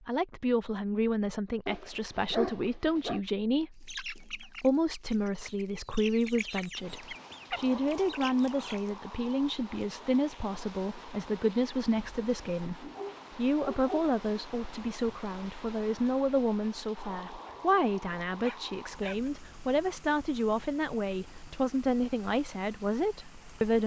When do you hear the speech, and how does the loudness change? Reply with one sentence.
The speech can be heard from 0.1 to 23.8 s, at a steady volume.